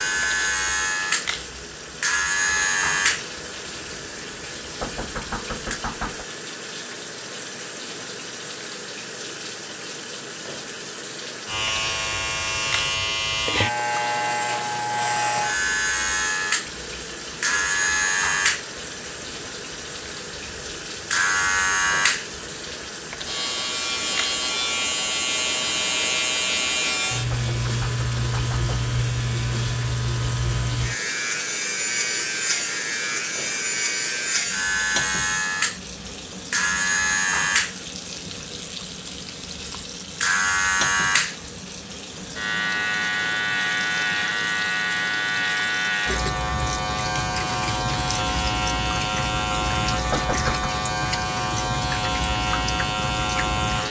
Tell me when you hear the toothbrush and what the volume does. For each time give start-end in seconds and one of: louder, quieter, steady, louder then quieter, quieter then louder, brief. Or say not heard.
not heard.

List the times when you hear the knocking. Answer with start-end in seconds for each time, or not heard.
4.8-6.2, 27.3-28.8, 50.1-50.7.